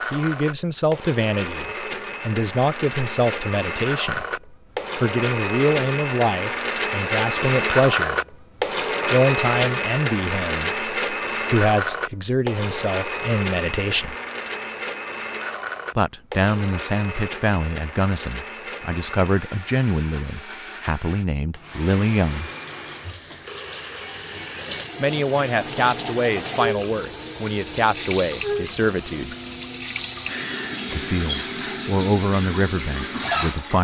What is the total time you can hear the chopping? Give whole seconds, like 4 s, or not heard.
not heard.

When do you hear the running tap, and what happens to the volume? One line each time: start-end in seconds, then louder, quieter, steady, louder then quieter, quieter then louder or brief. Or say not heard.
21.6-33.7 louder.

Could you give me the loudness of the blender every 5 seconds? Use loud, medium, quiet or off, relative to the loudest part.
medium, loud, loud, medium, quiet, quiet, quiet.